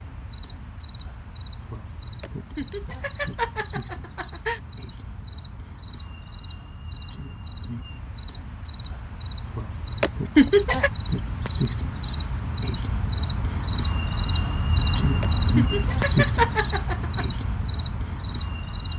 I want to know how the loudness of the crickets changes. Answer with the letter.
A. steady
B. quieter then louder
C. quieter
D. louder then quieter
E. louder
E.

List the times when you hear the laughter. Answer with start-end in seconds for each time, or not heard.
2.2-4.6, 10.0-10.9, 15.2-17.2.